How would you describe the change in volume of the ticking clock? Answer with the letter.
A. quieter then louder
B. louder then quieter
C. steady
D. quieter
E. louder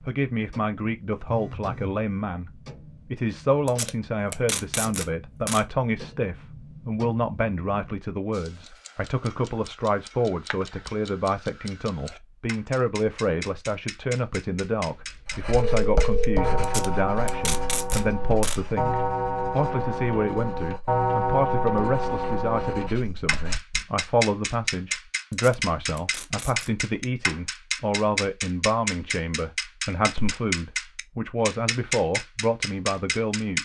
E.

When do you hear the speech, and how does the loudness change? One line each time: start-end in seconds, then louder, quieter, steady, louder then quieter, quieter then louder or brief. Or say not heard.
0.0-33.6 steady.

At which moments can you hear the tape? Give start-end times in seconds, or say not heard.
3.6-5.7, 16.6-18.6, 25.3-26.7.